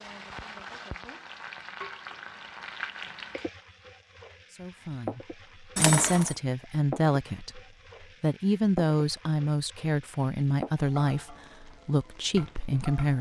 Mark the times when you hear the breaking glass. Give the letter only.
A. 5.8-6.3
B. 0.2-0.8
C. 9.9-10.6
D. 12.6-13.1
A.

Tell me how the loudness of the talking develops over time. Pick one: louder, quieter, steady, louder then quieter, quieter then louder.
steady.